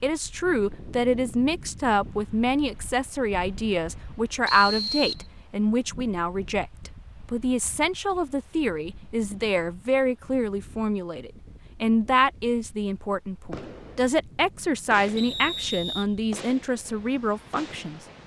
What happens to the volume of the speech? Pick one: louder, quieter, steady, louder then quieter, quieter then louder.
steady.